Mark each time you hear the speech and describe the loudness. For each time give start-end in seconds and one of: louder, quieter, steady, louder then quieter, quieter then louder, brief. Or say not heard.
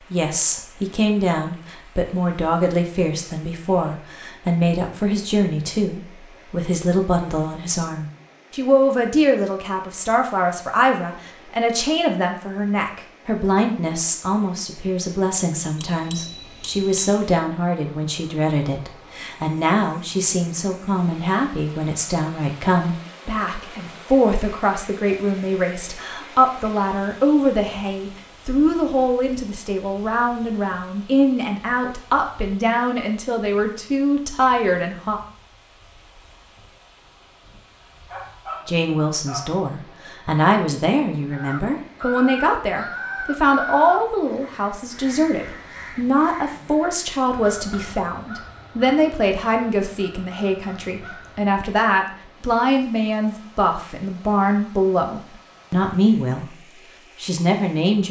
0.1-35.2 steady
38.6-56.5 steady
57.2-58.0 brief.